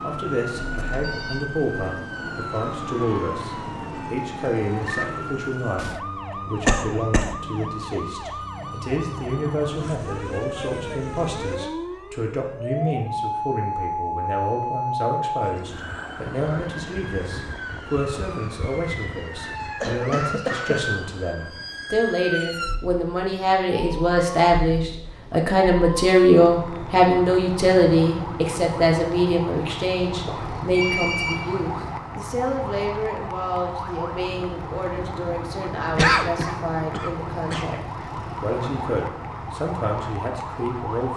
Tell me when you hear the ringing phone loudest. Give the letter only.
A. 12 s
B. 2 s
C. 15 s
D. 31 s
D.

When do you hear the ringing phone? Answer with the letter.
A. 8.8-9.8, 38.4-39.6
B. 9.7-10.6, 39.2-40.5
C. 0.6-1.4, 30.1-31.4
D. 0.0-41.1
C.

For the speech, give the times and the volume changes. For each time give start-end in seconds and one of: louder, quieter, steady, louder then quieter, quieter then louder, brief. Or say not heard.
0.0-41.1 louder then quieter.